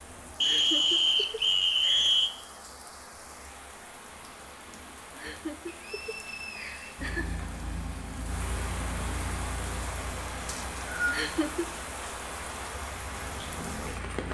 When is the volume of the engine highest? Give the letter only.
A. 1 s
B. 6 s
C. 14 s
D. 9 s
D.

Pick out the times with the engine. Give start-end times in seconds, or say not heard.
7.0-14.2.